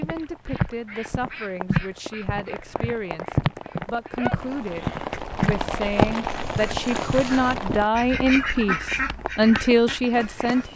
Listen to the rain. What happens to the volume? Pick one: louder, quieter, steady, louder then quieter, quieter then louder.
louder then quieter.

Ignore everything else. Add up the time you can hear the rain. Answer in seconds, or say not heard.
11 s.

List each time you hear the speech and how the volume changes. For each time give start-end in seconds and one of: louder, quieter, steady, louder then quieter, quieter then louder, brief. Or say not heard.
0.0-10.7 louder.